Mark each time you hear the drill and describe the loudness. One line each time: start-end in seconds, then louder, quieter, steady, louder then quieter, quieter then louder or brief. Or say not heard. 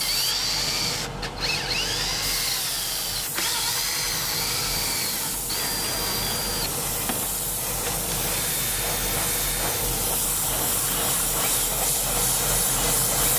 0.0-13.3 quieter.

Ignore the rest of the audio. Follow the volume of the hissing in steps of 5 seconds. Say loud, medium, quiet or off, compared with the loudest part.
medium, loud, loud.